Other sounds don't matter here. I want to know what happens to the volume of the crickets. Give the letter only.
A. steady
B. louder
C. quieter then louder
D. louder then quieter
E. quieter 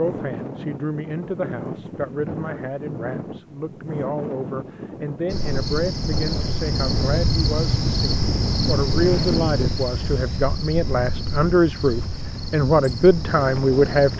E.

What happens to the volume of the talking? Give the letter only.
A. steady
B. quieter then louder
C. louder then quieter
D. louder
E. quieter
D.